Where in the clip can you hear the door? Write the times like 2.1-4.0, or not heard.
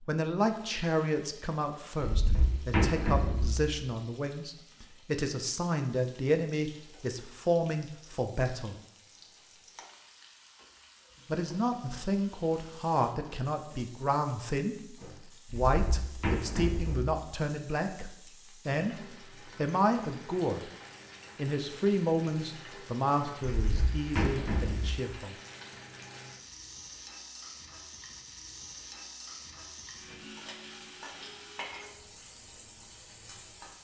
2.0-3.6, 15.5-17.0, 23.5-25.0.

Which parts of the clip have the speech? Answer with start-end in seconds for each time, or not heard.
0.0-8.8, 11.2-20.7, 21.4-25.4.